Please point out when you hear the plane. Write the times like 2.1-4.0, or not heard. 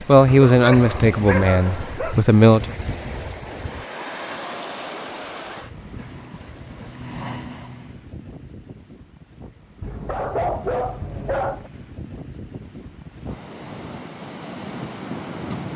6.0-8.0.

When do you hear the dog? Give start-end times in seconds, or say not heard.
0.2-2.1, 9.8-11.7.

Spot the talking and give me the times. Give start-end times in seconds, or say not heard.
0.1-2.8.